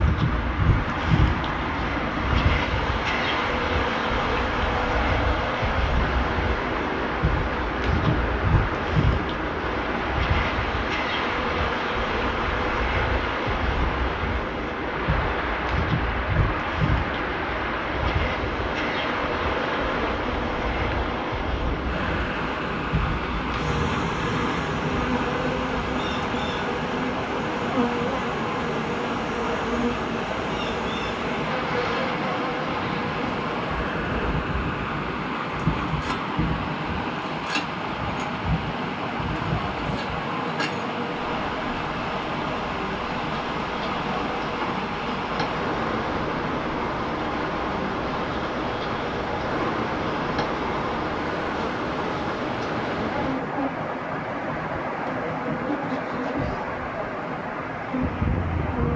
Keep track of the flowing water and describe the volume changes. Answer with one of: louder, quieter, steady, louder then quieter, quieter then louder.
steady.